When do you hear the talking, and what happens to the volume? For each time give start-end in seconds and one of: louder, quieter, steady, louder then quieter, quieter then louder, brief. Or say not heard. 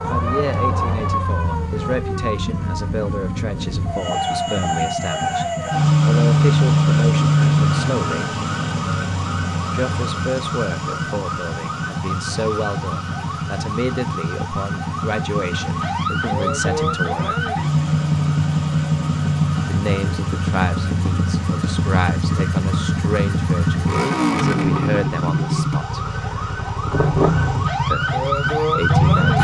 0.1-8.4 steady
9.7-17.5 steady
19.6-26.1 steady
27.9-29.4 brief.